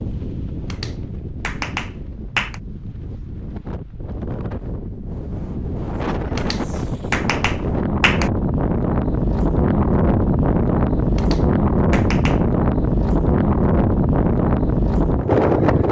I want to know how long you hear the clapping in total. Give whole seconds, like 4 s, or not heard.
5 s.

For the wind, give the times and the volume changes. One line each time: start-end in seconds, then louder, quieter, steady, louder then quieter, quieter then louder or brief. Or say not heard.
0.0-15.8 louder.